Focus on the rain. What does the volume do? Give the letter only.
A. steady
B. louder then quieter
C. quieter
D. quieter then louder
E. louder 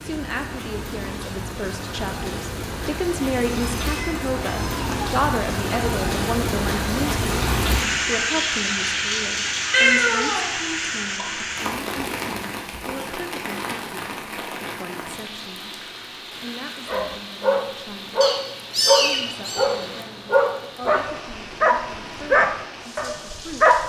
B.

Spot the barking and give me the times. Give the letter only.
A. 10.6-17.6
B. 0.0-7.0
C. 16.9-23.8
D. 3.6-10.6
C.